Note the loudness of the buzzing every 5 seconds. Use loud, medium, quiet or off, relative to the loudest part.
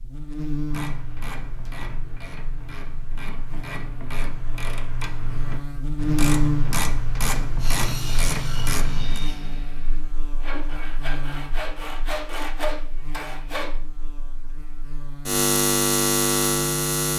quiet, medium, quiet, loud.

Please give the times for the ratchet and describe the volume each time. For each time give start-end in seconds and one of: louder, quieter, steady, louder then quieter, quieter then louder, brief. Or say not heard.
0.7-9.2 louder.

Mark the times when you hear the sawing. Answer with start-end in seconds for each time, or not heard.
7.6-13.8.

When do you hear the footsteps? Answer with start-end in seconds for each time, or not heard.
not heard.